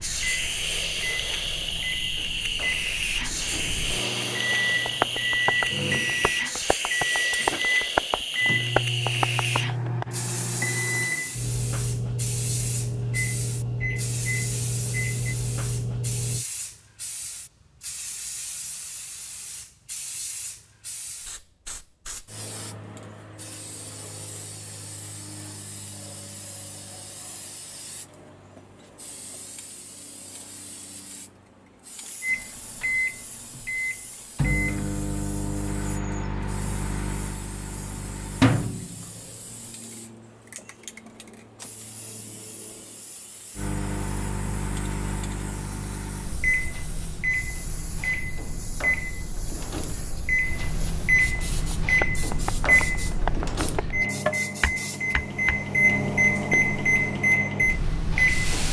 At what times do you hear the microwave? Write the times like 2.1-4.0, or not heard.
0.0-16.4, 32.2-39.3, 43.5-58.6.